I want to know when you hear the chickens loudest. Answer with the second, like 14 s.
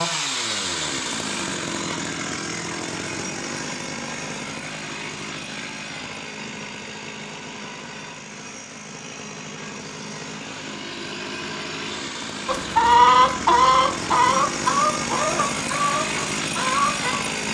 13 s.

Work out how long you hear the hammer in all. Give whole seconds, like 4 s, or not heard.
not heard.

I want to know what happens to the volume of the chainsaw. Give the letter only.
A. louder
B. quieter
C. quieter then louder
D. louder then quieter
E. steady
C.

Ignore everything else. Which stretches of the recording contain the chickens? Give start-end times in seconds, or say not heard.
12.4-17.2.